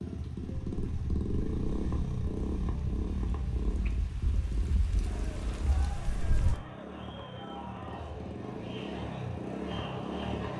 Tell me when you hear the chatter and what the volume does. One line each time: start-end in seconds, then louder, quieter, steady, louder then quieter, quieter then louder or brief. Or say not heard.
5.0-10.5 louder.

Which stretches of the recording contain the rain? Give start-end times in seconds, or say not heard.
0.0-6.6.